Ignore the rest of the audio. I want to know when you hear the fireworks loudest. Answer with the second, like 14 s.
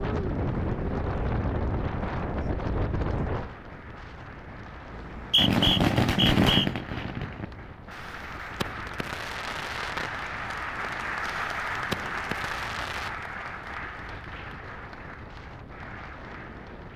6 s.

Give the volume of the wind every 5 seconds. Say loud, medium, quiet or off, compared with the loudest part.
loud, quiet, quiet, quiet.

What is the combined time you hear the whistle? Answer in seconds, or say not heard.
2 s.